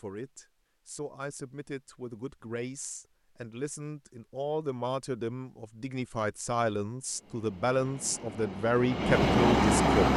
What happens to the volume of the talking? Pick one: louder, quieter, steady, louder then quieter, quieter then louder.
louder.